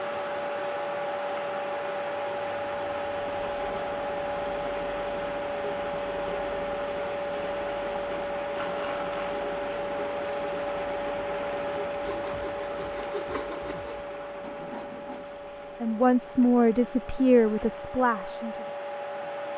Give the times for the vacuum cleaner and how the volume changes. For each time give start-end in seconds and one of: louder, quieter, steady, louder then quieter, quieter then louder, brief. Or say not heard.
0.0-19.5 quieter.